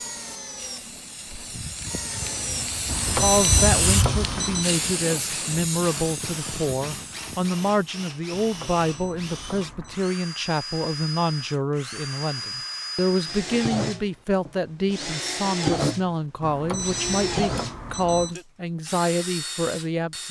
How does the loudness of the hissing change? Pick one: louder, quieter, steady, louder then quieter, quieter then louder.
louder then quieter.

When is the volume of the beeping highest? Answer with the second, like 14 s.
3 s.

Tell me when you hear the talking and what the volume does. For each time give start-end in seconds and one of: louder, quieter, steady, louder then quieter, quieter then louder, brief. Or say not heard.
3.2-20.2 steady.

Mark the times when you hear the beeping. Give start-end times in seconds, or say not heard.
2.9-4.7, 8.3-10.1, 16.4-18.4.